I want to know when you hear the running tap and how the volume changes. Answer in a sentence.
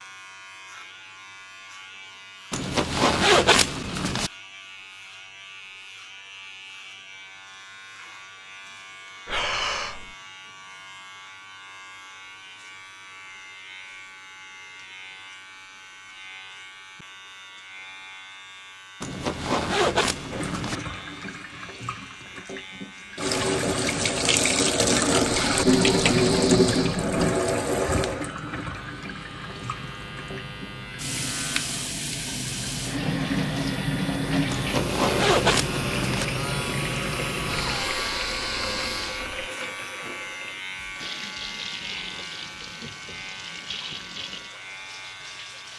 You can hear the running tap from 20.3 to 45.7 s, getting quieter.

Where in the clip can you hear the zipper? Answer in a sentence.
You can hear the zipper from 2.5 to 4.3 s, from 19.0 to 20.8 s and from 34.5 to 36.2 s.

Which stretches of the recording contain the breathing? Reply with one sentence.
You can hear the breathing from 9.2 to 10.2 s, from 25.3 to 27.1 s and from 37.5 to 39.4 s.